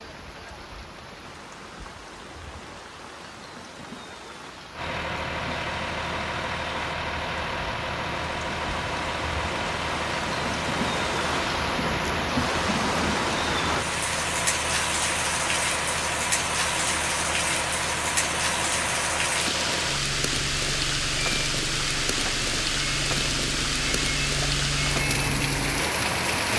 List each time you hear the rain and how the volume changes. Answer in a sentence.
You can hear the rain from 0.0 to 26.5 s, getting louder.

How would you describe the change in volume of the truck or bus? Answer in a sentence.
The volume of the truck or bus stays about the same.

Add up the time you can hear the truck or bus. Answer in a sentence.
The truck or bus can be heard for 22 seconds in total.